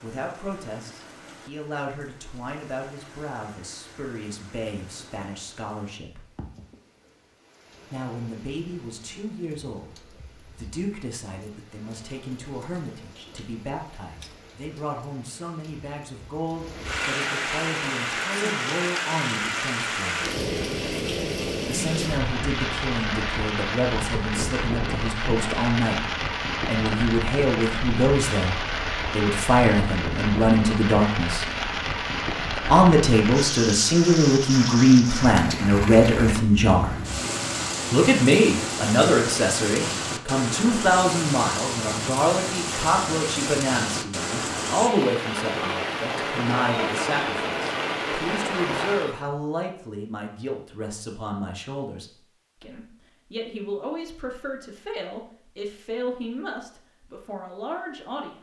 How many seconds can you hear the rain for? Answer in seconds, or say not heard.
49 s.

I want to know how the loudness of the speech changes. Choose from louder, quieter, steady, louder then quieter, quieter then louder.
louder then quieter.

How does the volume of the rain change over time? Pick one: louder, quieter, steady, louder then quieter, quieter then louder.
louder.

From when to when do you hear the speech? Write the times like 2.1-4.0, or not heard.
0.0-6.2, 7.9-20.2, 21.6-31.4, 32.6-37.0, 37.9-58.3.